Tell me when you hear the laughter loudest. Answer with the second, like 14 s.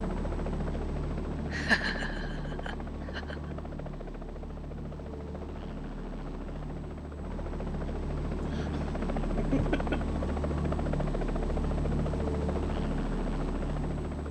2 s.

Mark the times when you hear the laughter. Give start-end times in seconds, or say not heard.
1.5-3.4, 8.4-10.0.